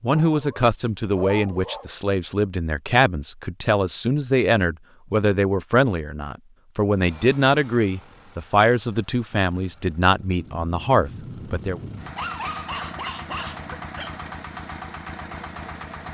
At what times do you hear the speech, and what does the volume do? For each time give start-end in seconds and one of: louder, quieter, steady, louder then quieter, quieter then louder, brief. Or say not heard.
0.0-11.8 steady.